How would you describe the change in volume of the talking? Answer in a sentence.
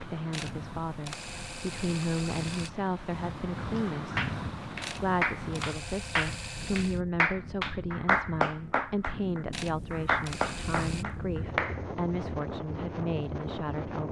The volume of the talking stays about the same.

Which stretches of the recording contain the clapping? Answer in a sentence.
You can hear the clapping from 4.2 to 11.8 s.